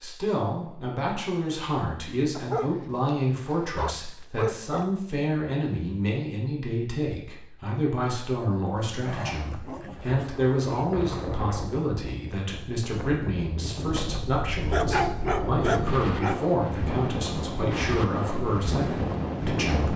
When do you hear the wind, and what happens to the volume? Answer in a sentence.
You can hear the wind from 9.9 to 19.9 s, getting louder.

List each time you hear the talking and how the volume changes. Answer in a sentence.
The talking can be heard from 0.0 to 19.9 s, at a steady volume.